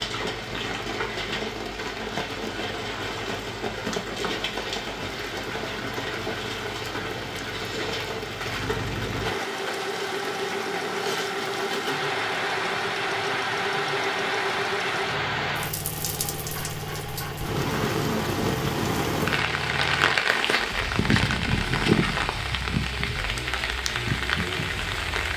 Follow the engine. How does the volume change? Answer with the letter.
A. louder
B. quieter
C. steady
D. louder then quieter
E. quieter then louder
D.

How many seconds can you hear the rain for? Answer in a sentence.
The rain can be heard for 25 seconds in total.